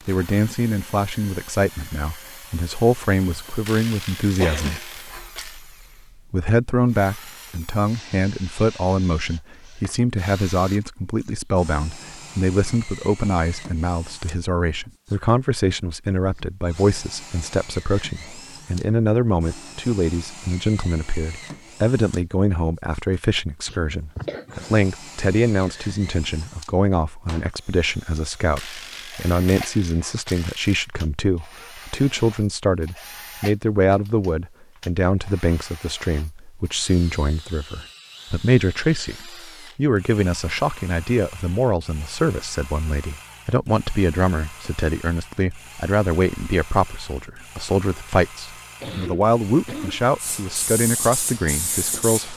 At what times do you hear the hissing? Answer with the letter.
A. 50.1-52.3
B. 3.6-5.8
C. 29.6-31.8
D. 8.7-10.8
A.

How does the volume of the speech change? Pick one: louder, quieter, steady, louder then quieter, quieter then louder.
steady.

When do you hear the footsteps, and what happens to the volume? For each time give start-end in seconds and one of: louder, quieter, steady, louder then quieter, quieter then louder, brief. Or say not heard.
not heard.